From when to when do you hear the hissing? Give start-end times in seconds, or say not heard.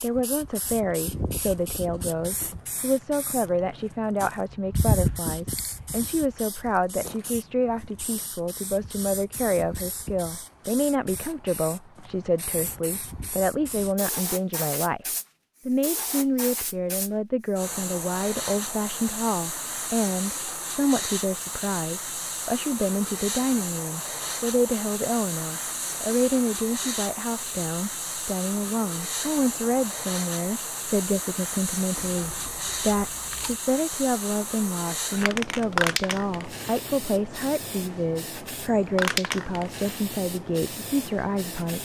0.0-41.8.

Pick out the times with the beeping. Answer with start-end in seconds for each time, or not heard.
not heard.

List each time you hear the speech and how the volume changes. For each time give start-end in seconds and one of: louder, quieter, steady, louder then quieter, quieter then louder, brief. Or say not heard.
0.0-15.1 steady
15.7-41.8 steady.